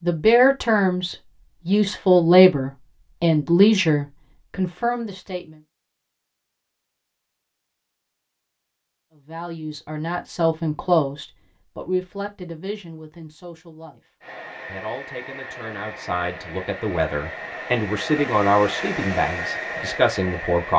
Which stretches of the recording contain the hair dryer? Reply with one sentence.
You can hear the hair dryer from 14.2 to 20.7 s.